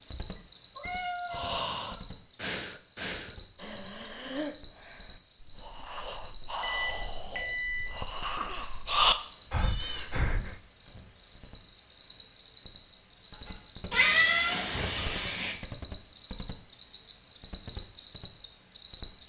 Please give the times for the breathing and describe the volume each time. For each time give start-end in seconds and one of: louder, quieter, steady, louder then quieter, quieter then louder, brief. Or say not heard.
1.3-10.6 quieter then louder.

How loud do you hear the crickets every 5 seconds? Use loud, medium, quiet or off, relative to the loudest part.
medium, medium, medium, loud.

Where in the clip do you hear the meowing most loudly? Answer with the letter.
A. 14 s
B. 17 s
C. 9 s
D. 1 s
A.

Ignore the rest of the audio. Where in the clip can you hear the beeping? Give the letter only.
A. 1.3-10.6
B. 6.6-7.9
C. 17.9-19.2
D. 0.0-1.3
B.